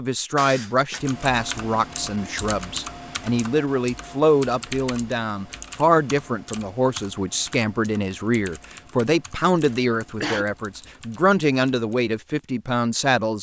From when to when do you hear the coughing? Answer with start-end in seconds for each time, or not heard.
0.3-1.1, 9.7-10.4.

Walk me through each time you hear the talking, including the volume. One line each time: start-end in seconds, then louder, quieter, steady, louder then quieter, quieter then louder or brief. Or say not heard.
0.0-13.3 steady.